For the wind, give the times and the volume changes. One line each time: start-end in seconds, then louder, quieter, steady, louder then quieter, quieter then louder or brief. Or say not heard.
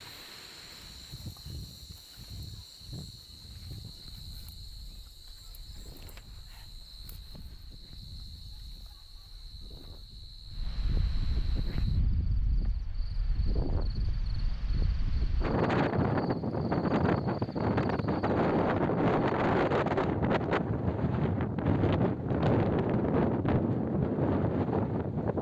0.0-25.3 quieter then louder.